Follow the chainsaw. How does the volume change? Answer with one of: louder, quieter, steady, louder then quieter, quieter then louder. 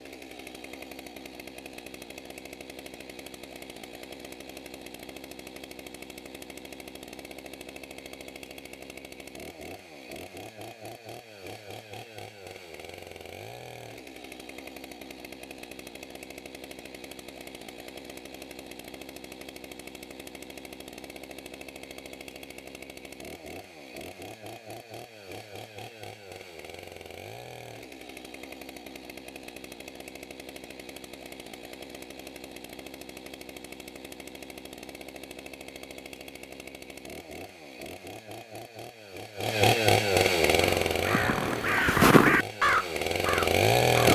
louder.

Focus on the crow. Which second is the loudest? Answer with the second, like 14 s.
42 s.